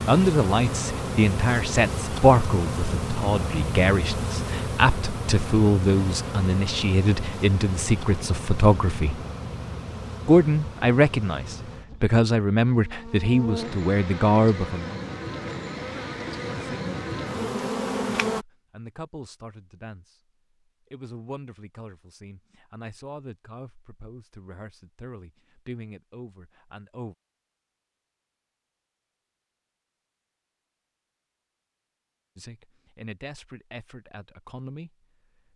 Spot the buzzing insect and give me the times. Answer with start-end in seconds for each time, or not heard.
0.0-18.4.